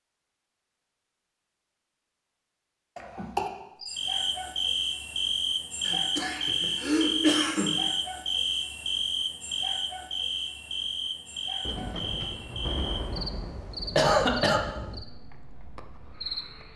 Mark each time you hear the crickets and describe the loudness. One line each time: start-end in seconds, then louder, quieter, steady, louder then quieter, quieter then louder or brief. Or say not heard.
3.8-16.7 quieter.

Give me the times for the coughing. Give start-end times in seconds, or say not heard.
3.0-3.5, 5.8-7.7, 13.9-14.6.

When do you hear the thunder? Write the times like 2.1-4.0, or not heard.
11.6-15.1.